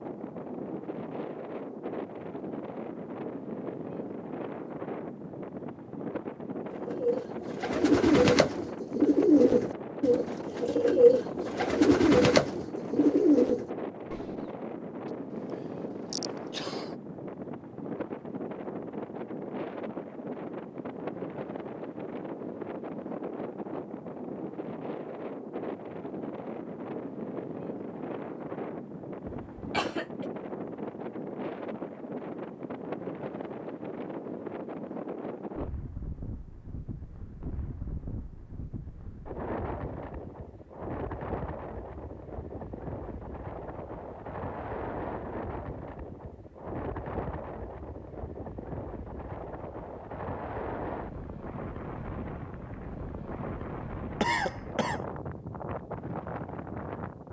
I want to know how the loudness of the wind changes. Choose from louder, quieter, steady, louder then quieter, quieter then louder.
steady.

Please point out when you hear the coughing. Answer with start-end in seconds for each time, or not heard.
16.1-16.9, 29.2-30.3, 54.2-55.0.